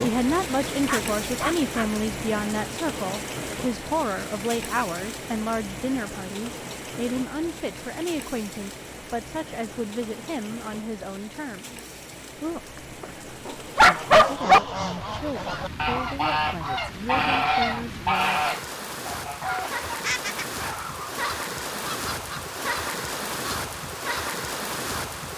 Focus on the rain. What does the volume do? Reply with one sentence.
The volume of the rain goes down, then up.